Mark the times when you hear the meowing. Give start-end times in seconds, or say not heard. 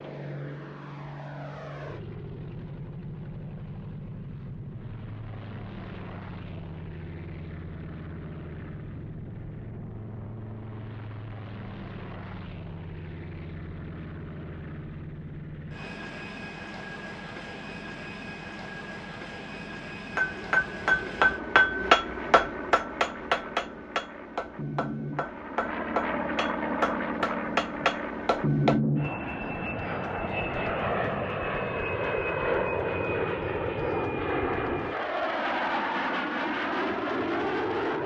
not heard.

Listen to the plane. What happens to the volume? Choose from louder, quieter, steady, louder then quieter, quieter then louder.
louder.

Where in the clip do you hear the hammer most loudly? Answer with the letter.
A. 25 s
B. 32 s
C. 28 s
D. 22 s
D.